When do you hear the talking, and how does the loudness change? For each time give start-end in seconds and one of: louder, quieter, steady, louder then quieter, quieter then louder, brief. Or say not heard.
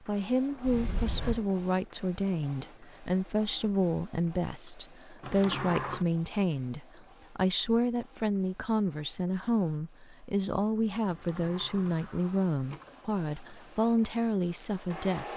0.0-15.3 steady.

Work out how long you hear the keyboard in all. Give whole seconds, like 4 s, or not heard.
not heard.